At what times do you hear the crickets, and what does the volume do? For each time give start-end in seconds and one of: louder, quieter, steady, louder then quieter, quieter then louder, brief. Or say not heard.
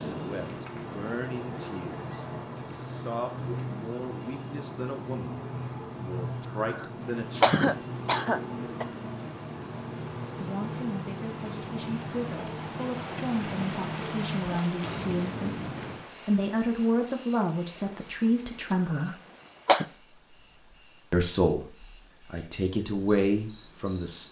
0.0-24.2 quieter.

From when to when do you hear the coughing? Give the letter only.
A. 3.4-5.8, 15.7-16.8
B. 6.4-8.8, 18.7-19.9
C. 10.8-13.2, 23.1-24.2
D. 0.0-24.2
B.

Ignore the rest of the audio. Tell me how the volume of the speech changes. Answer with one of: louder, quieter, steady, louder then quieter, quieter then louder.
louder.